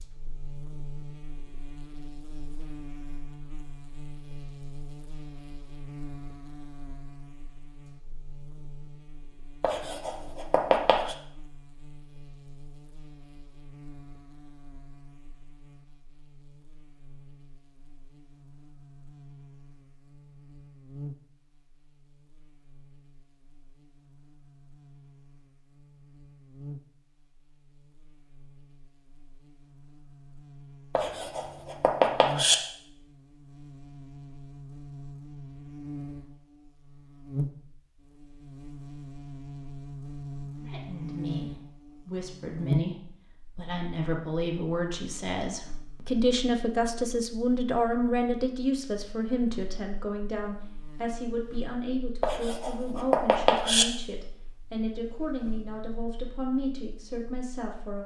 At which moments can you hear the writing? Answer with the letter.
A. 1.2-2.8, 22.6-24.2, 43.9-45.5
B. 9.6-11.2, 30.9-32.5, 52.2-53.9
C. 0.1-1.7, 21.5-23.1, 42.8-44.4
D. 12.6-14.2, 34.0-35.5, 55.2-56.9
B.